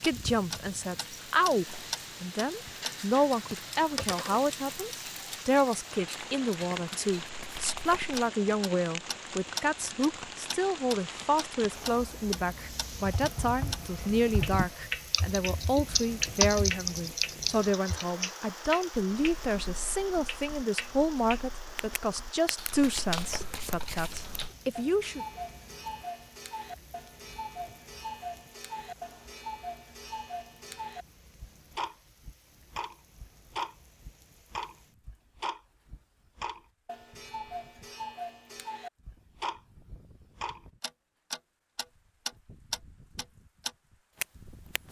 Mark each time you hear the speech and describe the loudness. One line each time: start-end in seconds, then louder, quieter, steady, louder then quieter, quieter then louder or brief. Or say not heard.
0.0-25.2 steady.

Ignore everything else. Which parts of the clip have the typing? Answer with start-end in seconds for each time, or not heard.
13.1-24.6.